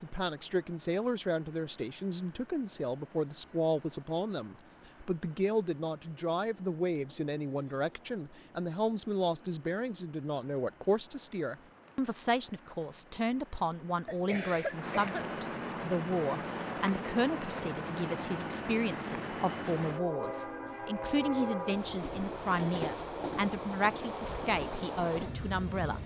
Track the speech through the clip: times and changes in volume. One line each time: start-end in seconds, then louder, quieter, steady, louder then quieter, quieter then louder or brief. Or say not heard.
0.0-26.0 steady.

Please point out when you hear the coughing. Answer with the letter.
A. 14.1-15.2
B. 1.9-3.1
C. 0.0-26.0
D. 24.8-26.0
A.